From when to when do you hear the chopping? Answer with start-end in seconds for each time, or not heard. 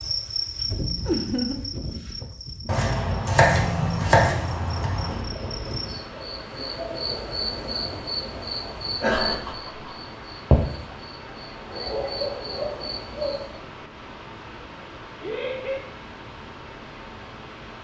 2.6-5.2.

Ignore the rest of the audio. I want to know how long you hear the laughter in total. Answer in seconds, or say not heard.
2 s.